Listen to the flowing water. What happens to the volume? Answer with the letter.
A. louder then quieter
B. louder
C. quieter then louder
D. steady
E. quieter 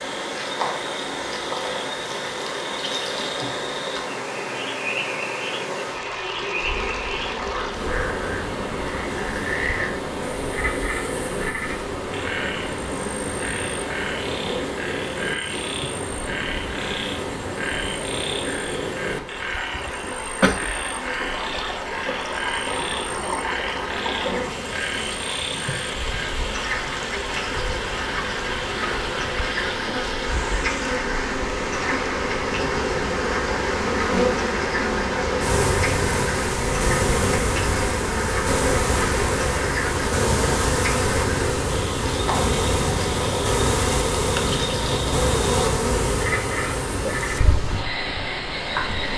D.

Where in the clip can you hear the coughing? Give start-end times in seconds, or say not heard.
19.7-20.6.